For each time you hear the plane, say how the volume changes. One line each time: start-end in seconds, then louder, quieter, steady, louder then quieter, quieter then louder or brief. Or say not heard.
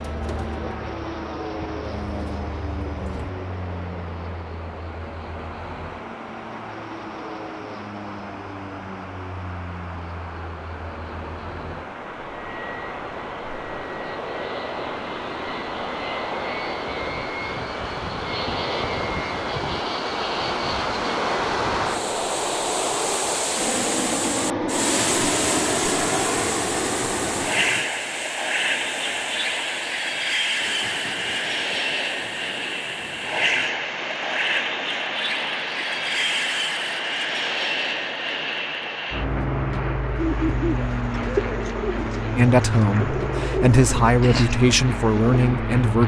0.0-46.0 louder.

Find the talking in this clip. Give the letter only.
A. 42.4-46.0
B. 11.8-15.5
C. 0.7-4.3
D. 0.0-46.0
A.